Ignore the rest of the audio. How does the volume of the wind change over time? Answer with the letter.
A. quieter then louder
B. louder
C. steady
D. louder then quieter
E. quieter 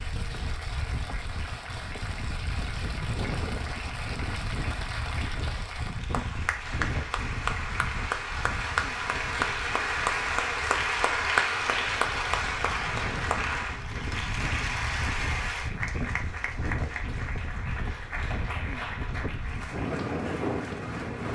A.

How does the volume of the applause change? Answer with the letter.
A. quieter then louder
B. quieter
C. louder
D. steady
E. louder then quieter
E.